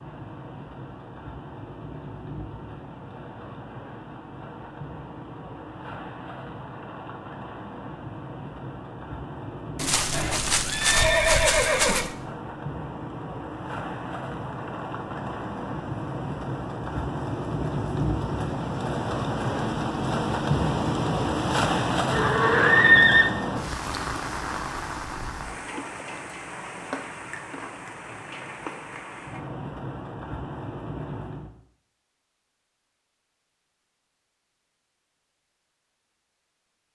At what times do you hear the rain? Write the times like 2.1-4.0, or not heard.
0.0-31.5.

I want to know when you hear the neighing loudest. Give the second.
23 s.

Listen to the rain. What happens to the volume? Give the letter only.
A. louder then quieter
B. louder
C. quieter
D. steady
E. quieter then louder
A.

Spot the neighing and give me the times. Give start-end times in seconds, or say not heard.
9.8-12.1, 22.1-23.2.